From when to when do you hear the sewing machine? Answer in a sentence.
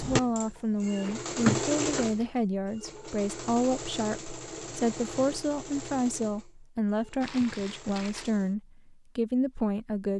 The sewing machine can be heard from 0.0 to 8.6 s.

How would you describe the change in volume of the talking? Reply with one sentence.
The volume of the talking stays about the same.